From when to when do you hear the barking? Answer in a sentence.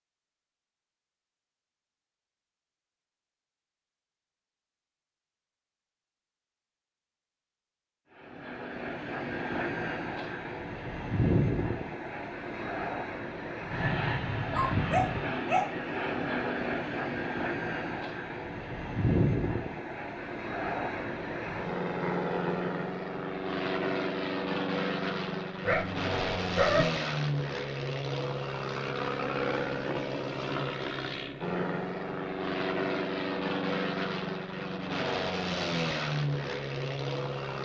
The barking can be heard from 14.5 to 15.7 s and from 25.6 to 26.9 s.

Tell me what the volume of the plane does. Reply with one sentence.
The volume of the plane stays about the same.